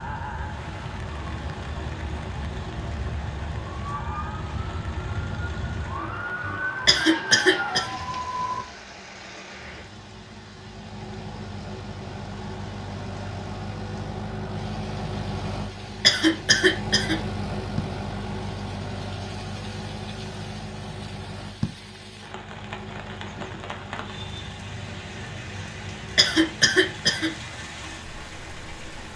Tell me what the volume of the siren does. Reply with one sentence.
The volume of the siren goes up.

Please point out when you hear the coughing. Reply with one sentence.
The coughing can be heard from 6.8 to 7.8 s, from 16.0 to 17.1 s and from 26.1 to 27.3 s.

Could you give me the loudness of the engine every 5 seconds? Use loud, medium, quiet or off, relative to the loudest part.
medium, medium, loud, loud, medium, medium.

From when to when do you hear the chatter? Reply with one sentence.
You can't hear the chatter here.